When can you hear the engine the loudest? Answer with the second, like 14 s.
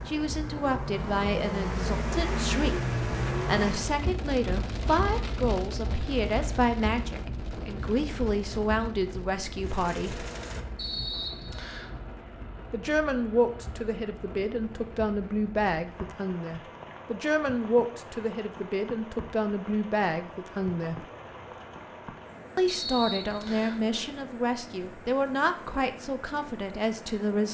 3 s.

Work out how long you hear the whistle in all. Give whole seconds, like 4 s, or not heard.
2 s.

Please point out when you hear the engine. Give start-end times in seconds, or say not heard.
0.0-4.0, 9.6-14.4.